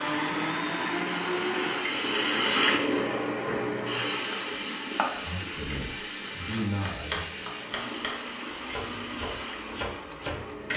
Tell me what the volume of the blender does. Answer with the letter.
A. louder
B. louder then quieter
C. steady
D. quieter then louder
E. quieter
E.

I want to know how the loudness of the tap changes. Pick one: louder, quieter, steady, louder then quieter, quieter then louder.
quieter.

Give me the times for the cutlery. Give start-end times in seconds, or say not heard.
not heard.